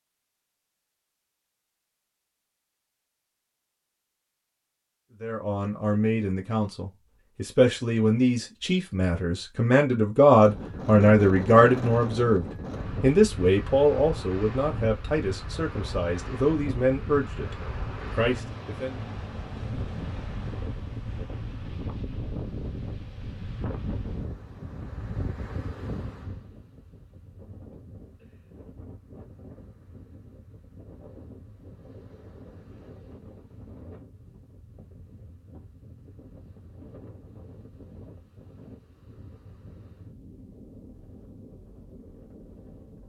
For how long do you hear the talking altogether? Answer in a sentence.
You can hear the talking for 14 seconds altogether.